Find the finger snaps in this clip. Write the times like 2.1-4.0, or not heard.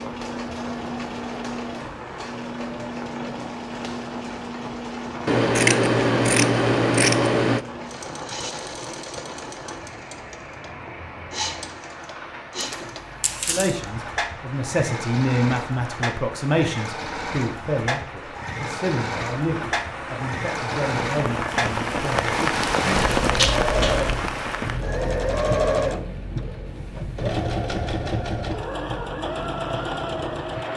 23.4-23.9.